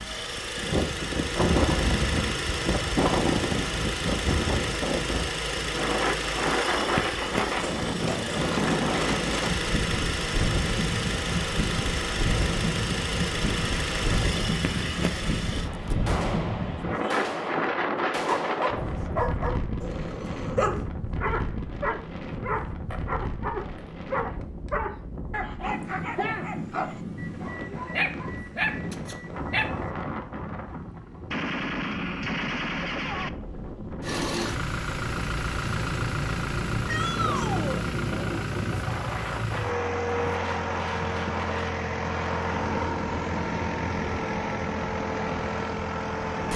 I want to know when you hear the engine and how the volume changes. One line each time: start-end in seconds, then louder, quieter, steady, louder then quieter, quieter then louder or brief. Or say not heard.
0.0-15.7 steady
34.0-46.5 steady.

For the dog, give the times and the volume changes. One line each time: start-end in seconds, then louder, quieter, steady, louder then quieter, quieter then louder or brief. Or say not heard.
18.2-29.9 steady.